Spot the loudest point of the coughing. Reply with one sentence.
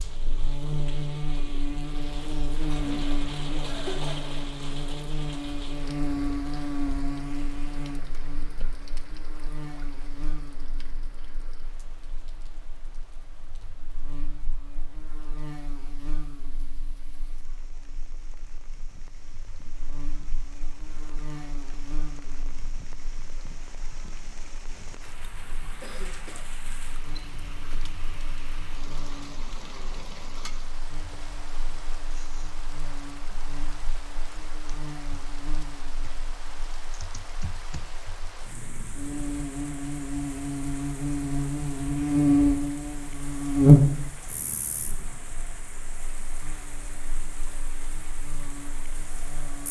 The volume of the coughing peaks at 4 seconds.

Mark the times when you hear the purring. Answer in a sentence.
The purring can't be heard in this clip.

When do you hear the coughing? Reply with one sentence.
The coughing can be heard from 2.6 to 4.4 s and from 25.8 to 26.5 s.